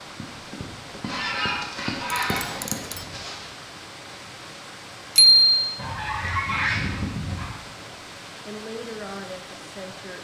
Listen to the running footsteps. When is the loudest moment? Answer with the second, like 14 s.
2 s.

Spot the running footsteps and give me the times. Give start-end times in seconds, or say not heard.
0.0-3.2.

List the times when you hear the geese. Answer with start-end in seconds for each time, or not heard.
1.0-3.5, 5.8-7.5.